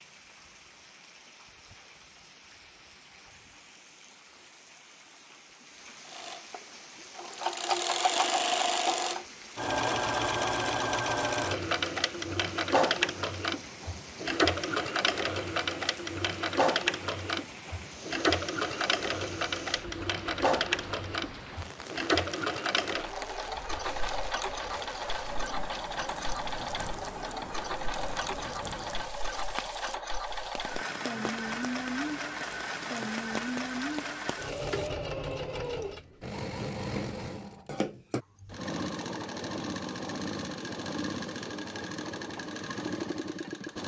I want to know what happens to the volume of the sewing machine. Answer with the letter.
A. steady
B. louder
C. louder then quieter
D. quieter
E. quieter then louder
D.